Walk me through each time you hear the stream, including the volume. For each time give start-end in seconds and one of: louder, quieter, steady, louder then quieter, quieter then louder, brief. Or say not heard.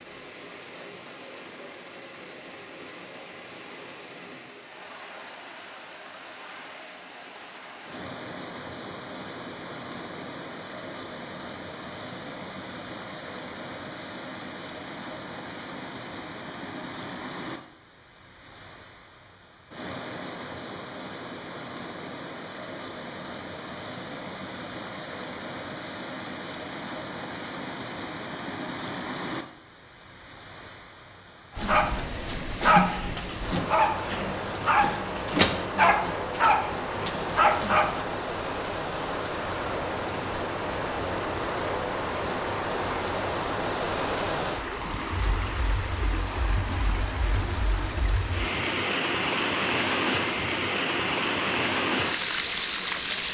0.0-53.3 louder.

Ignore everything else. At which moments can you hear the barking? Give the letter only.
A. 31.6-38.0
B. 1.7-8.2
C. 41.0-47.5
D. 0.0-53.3
A.